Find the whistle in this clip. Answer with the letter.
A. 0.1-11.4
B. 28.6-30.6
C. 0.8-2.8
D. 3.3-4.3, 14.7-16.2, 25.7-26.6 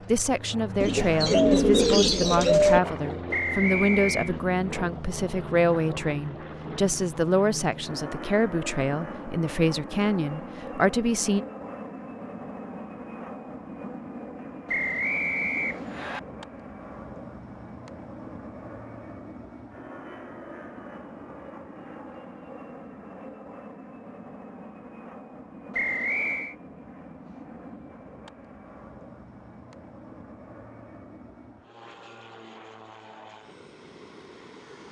D.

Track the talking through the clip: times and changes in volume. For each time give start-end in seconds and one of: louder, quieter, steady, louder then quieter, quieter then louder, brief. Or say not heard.
0.1-11.4 steady.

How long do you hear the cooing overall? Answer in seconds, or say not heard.
2 s.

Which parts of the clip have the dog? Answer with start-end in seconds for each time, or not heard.
not heard.